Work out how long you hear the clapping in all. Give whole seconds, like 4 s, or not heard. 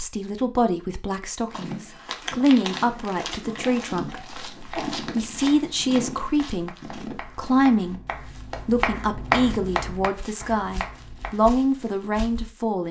7 s.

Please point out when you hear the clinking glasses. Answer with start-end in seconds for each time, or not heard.
not heard.